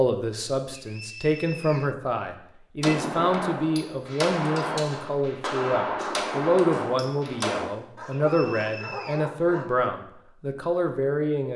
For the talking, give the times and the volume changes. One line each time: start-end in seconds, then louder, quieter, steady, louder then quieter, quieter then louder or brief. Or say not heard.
0.0-11.5 steady.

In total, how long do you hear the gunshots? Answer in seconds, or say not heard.
5 s.